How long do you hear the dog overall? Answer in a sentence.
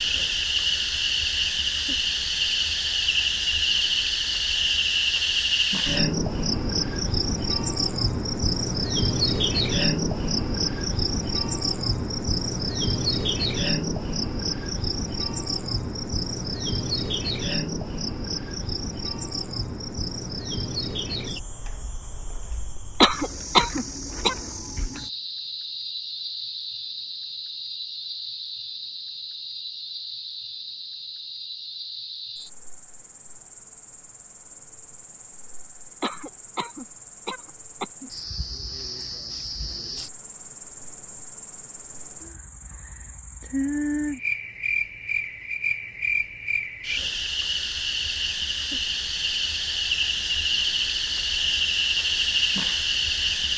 You can't hear the dog here.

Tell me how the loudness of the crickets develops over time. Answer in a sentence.
The volume of the crickets goes down, then up.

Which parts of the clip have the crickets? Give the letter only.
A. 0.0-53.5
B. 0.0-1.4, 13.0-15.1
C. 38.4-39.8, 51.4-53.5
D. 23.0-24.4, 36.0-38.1
A.